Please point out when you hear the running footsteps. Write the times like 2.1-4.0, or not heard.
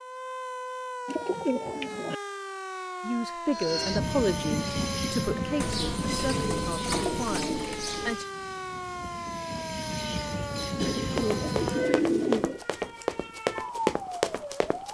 11.1-14.9.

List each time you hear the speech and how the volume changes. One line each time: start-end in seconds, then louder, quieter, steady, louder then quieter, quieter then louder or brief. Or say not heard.
3.0-8.2 quieter.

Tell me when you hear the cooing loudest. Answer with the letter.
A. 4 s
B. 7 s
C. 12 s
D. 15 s
C.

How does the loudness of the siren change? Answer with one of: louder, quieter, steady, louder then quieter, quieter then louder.
steady.